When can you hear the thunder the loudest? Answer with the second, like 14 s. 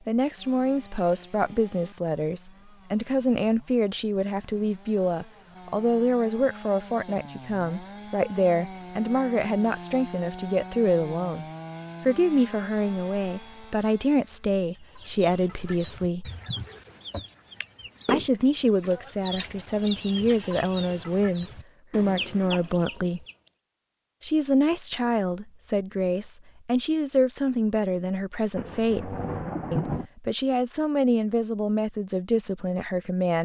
30 s.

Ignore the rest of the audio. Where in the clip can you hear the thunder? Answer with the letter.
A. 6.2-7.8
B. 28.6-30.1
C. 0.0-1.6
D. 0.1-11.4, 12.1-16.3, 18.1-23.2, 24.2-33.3
B.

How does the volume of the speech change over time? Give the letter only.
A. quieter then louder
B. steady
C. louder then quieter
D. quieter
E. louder
B.